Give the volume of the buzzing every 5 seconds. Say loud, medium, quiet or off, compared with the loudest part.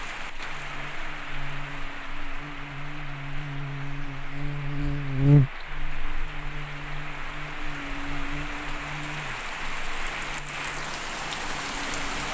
medium, loud, quiet.